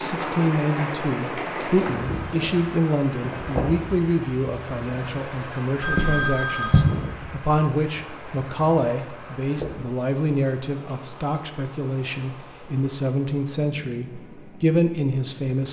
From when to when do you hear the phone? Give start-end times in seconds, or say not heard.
5.8-6.8.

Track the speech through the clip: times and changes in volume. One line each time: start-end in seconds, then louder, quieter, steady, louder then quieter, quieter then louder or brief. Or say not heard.
0.0-15.6 steady.